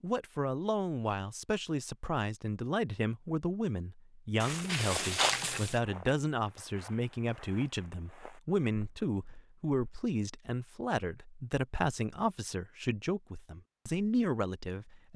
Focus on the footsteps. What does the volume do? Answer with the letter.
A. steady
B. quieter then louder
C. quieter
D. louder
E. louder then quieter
C.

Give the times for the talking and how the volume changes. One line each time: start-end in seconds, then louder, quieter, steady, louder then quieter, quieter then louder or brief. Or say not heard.
0.0-15.1 steady.